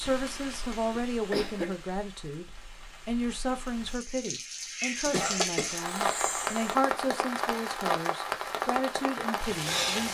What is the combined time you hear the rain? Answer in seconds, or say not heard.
10 s.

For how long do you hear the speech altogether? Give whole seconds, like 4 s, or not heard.
10 s.